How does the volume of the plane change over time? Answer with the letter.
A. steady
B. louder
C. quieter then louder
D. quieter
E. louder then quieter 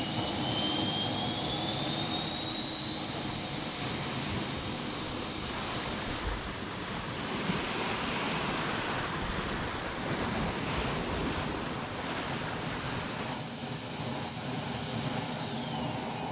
C.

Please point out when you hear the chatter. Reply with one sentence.
The chatter can't be heard in this clip.